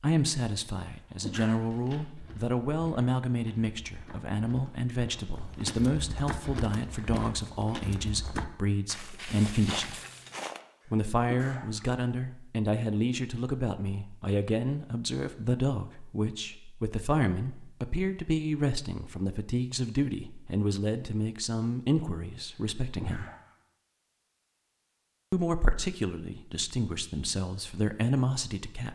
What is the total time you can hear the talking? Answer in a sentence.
You can hear the talking for 26 seconds altogether.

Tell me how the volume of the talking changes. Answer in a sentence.
The loudness of the talking stays about the same.